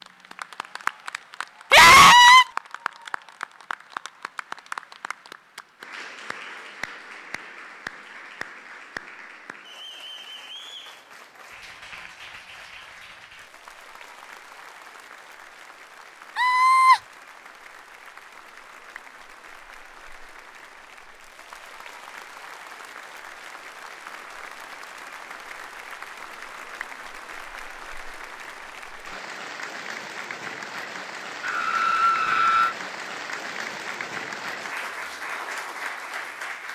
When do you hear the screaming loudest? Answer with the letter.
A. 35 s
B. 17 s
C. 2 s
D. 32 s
C.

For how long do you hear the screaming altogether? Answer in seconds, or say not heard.
3 s.